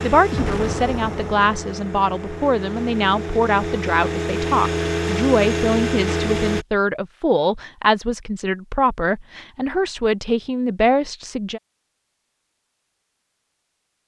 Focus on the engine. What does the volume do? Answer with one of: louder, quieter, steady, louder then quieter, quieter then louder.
louder.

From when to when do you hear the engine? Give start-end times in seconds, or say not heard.
0.0-6.7.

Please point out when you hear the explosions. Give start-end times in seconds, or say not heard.
0.3-1.6.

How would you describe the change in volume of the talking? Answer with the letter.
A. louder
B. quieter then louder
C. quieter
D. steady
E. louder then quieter
D.